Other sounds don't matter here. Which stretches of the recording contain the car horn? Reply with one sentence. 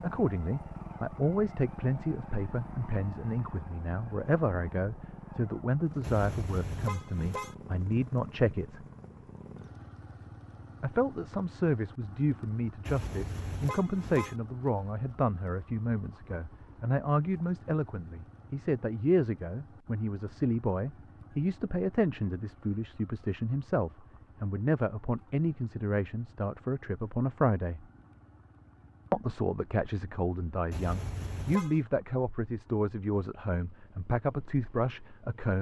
The car horn can be heard from 6.0 to 7.5 s, from 12.8 to 14.3 s and from 30.7 to 31.8 s.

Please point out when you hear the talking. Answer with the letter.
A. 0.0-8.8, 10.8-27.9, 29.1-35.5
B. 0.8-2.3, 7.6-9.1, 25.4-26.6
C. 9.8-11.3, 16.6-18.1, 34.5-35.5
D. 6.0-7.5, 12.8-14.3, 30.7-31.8
A.